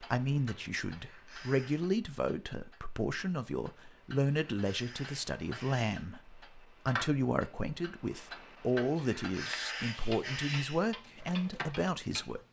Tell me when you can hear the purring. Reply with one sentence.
You can't hear the purring here.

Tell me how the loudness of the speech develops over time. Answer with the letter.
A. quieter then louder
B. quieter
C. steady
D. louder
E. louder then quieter
C.